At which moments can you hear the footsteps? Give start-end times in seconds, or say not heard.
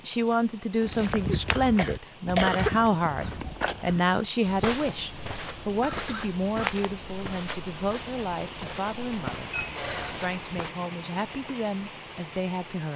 0.8-10.7.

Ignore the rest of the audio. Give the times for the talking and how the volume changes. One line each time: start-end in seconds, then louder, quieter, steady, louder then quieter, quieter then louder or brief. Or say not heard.
0.1-9.5 quieter
10.2-12.9 brief.